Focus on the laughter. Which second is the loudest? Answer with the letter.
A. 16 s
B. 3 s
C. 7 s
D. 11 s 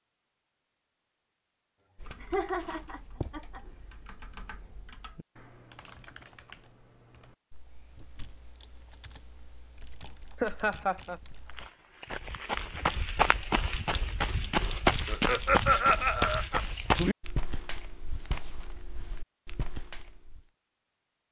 A.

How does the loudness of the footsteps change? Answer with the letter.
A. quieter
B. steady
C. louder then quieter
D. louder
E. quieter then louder
A.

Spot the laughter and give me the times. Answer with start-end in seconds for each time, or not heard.
2.2-3.6, 10.4-11.2, 15.1-16.6.